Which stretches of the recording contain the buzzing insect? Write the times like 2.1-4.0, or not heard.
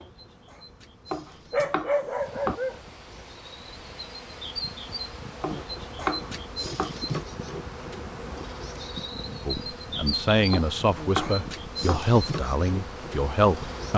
0.0-13.9.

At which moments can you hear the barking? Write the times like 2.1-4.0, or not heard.
1.5-2.8.